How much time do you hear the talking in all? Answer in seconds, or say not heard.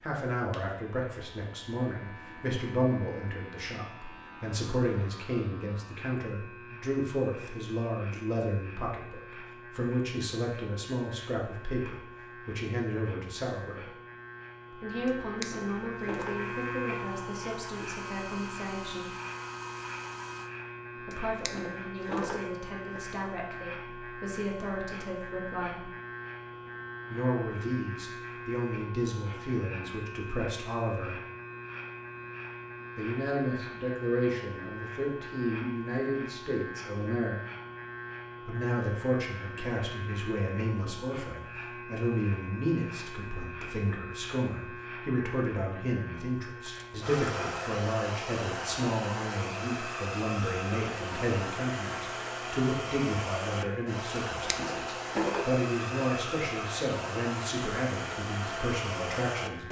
53 s.